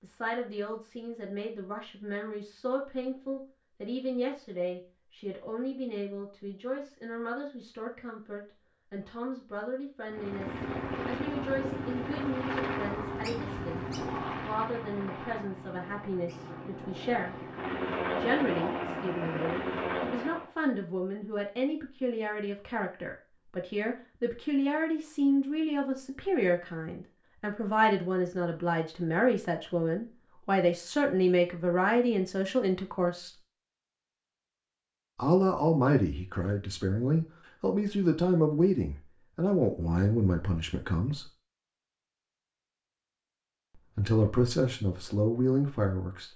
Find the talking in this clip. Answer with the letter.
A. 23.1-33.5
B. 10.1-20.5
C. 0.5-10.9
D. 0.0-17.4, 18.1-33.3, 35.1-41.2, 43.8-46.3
D.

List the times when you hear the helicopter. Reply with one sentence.
The helicopter can be heard from 10.1 to 20.5 s.